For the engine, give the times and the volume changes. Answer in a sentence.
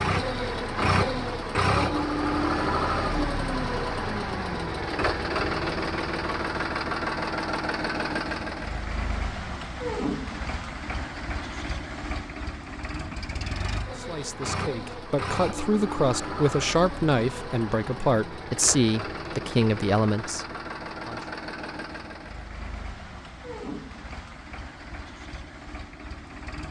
The engine can be heard from 0.0 to 26.6 s, getting quieter.